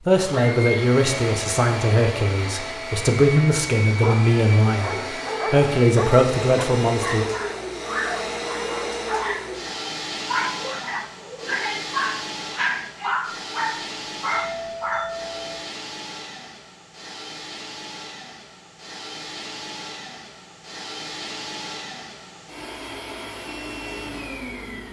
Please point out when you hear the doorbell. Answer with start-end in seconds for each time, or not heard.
14.3-15.6.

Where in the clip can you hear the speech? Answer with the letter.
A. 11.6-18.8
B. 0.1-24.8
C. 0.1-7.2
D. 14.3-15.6
C.